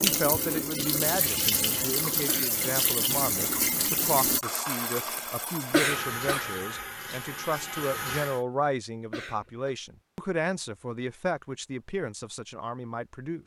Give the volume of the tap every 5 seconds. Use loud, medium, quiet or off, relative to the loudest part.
loud, medium, off.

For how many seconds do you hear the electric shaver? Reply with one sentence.
The electric shaver can't be heard in this clip.